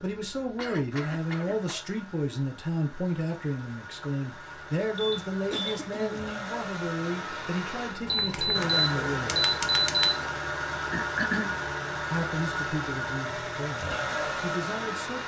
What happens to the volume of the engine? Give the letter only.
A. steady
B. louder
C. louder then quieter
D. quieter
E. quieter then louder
B.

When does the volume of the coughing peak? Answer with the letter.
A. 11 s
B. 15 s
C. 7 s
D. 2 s
A.